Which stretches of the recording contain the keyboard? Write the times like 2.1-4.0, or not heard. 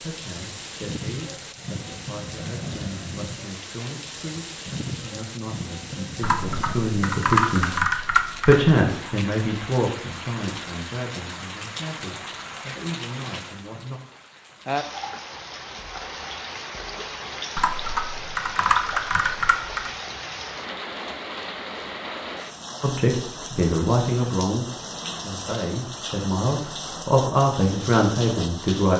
6.2-8.8, 17.6-19.9.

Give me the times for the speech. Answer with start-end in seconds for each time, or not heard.
0.0-7.8, 8.4-13.9, 22.8-28.9.